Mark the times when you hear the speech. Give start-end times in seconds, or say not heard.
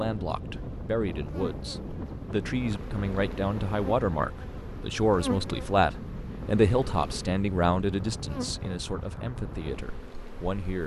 0.0-10.8.